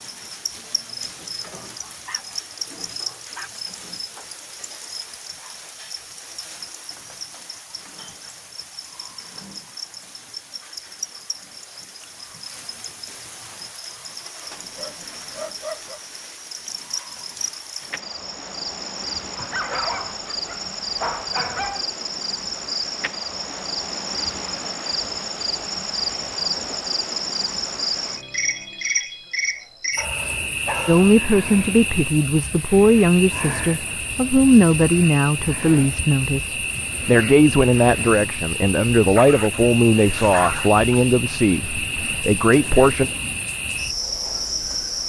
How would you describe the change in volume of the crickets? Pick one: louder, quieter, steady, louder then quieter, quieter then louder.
louder.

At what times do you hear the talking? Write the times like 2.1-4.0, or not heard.
30.9-43.1.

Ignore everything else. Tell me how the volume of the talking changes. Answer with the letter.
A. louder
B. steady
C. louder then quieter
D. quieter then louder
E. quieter
B.